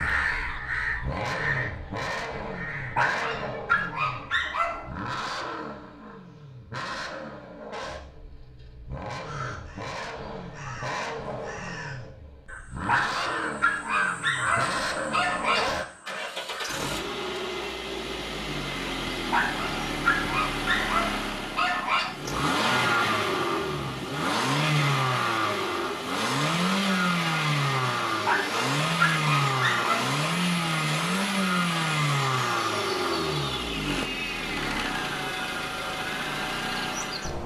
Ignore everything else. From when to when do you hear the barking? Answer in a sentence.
You can hear the barking from 3.0 to 4.9 s, from 12.8 to 15.8 s, from 19.3 to 22.1 s and from 28.2 to 30.1 s.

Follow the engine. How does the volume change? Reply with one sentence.
The loudness of the engine goes up.